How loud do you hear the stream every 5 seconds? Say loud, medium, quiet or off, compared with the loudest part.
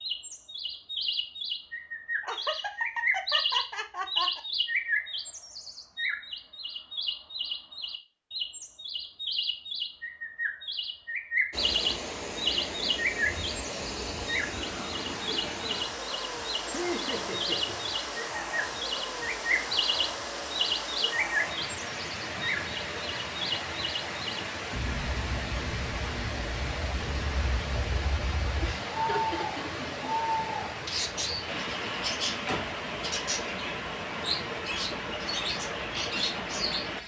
off, off, loud, loud, loud, loud, loud, loud.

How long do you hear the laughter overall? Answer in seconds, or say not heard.
5 s.